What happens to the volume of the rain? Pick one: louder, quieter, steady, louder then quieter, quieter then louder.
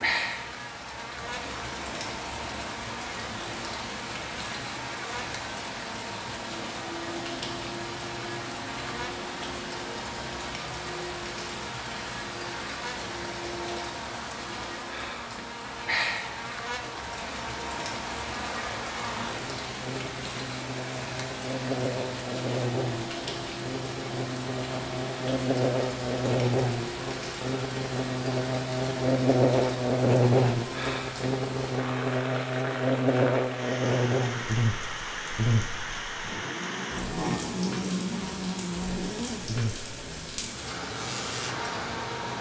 steady.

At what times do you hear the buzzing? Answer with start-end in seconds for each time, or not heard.
0.1-42.3.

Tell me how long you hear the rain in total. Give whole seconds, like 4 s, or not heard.
42 s.